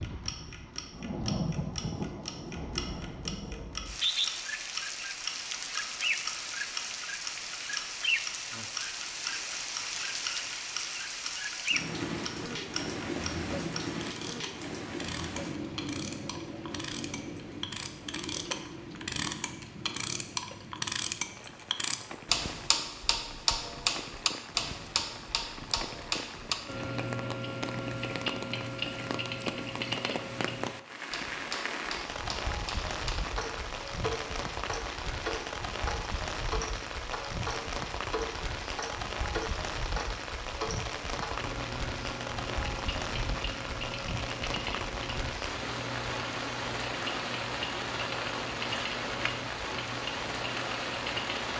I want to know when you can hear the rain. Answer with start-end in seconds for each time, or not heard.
0.0-51.5.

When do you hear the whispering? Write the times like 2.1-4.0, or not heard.
not heard.